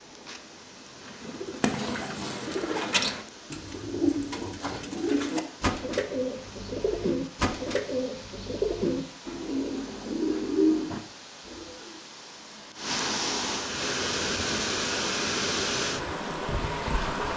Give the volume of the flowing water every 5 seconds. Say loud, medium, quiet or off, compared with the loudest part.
quiet, quiet, loud, loud.